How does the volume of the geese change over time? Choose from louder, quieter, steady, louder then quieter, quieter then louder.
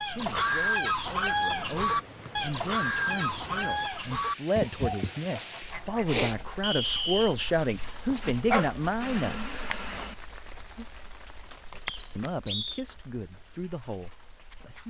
quieter.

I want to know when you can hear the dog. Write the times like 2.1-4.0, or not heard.
8.1-10.2.